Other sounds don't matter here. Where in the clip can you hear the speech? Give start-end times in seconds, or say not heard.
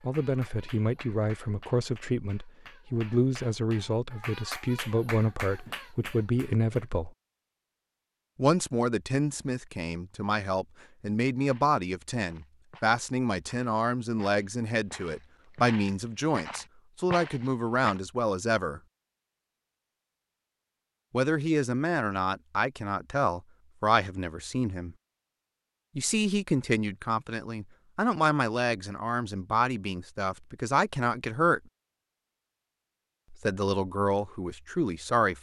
0.0-7.1, 8.3-18.8, 21.1-24.9, 25.9-31.6, 33.3-35.3.